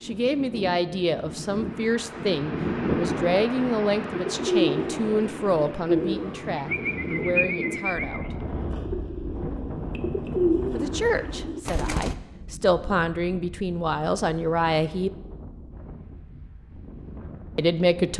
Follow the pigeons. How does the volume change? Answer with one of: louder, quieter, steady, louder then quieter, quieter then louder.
quieter then louder.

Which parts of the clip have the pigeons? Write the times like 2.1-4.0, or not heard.
4.2-12.2.